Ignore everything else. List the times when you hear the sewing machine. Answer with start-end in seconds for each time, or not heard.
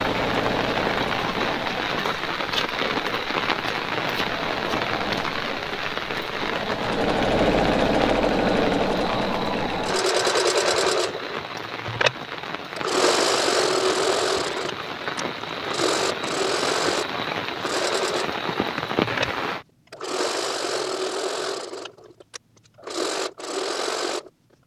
0.0-24.3.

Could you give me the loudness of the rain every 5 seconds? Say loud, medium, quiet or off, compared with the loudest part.
loud, loud, medium, loud, off.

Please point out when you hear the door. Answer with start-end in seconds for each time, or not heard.
not heard.